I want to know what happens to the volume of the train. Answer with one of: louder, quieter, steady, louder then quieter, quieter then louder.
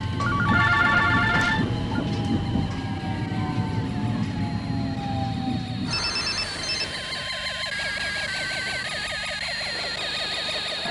quieter.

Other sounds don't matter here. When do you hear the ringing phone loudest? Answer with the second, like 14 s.
1 s.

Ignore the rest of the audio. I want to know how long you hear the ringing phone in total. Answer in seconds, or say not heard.
3 s.